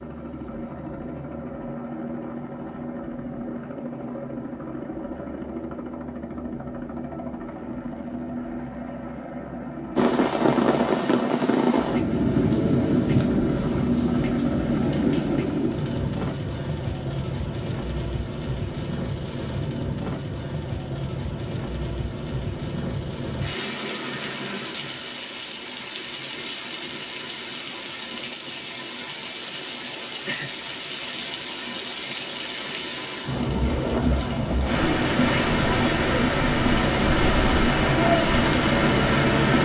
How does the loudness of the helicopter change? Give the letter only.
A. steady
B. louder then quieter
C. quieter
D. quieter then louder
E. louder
E.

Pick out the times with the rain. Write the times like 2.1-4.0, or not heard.
9.9-39.5.